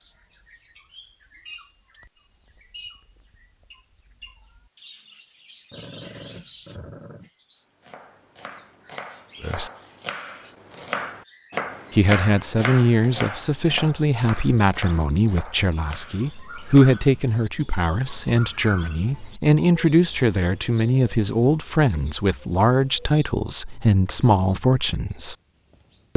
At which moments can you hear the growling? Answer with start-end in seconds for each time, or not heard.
5.7-7.3.